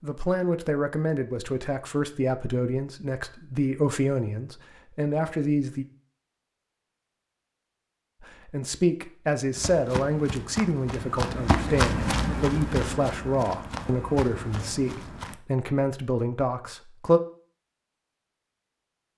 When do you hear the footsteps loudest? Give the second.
12 s.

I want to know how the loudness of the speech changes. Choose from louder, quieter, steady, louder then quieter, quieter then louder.
steady.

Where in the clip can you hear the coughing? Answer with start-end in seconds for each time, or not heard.
not heard.